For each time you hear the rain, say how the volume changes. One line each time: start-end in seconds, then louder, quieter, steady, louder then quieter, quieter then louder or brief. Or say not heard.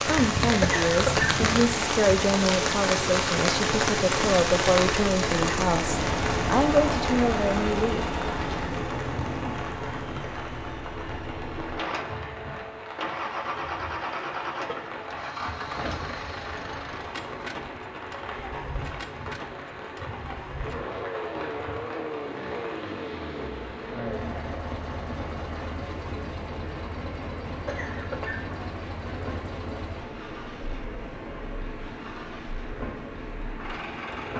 0.0-34.3 quieter.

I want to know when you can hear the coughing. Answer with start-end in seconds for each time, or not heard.
0.6-1.4, 27.6-28.6.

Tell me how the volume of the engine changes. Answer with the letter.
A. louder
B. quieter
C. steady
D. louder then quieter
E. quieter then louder
B.